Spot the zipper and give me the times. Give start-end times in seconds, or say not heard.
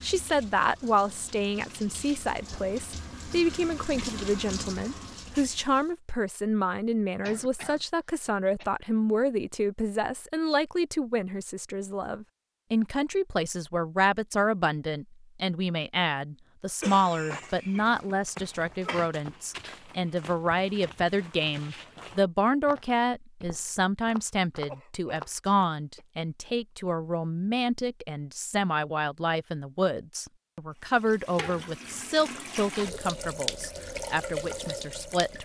not heard.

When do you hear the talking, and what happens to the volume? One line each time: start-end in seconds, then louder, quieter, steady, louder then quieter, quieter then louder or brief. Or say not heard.
0.0-35.4 steady.